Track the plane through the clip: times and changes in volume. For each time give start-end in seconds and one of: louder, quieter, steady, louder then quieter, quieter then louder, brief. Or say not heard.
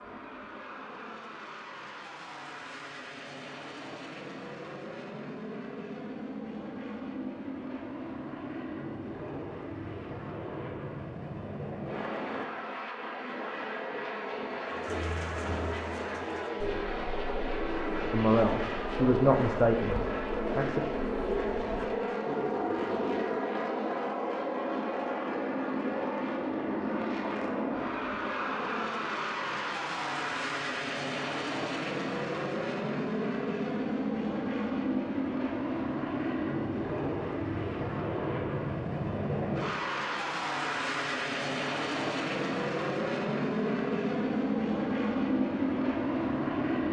0.0-46.8 louder.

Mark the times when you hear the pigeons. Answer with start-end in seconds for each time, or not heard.
14.7-23.5.